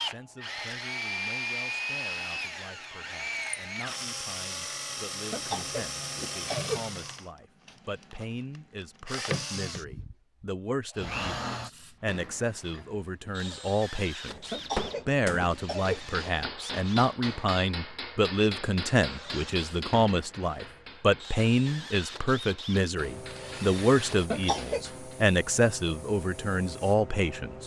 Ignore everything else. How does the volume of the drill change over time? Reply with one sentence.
The loudness of the drill goes down.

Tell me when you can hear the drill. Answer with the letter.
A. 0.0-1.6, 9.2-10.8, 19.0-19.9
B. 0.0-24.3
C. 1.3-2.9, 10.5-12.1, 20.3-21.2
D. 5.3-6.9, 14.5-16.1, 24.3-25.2
B.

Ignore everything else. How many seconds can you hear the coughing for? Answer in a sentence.
The coughing can be heard for 4 seconds in total.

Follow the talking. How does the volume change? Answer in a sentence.
The loudness of the talking goes up.